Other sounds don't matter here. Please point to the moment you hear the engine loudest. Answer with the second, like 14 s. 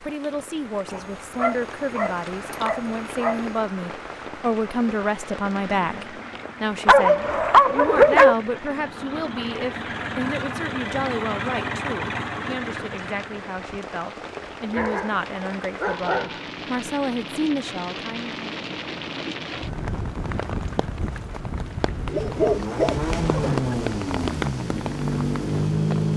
26 s.